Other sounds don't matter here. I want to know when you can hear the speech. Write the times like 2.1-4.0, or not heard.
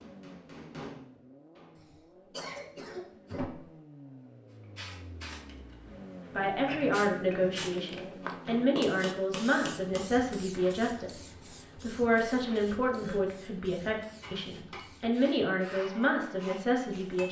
6.3-17.2.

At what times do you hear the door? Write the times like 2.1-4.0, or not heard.
not heard.